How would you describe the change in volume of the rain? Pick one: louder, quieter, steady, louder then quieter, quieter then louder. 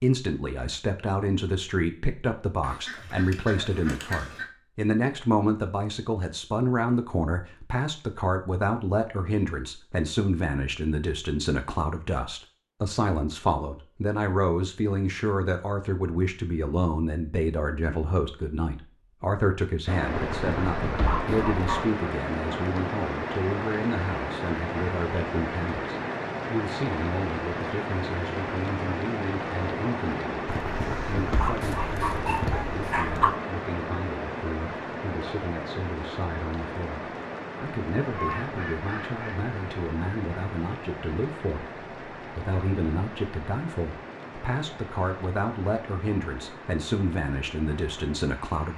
quieter.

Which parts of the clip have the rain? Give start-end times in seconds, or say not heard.
19.9-48.7.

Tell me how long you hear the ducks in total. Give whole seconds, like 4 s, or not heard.
3 s.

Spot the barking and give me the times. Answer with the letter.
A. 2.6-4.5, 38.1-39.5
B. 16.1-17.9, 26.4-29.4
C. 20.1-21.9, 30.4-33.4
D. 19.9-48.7
C.